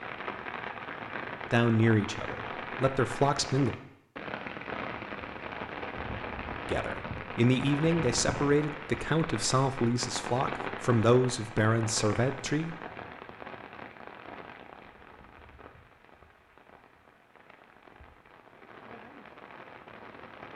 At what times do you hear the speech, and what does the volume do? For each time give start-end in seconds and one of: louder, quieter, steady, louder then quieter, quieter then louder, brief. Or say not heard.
1.5-3.8 brief
6.7-12.8 steady.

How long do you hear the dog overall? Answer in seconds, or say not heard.
not heard.